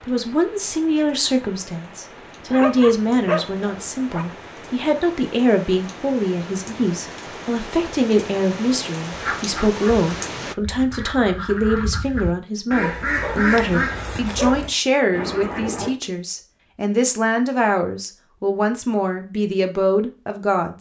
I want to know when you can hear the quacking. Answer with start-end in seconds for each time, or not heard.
9.1-15.9.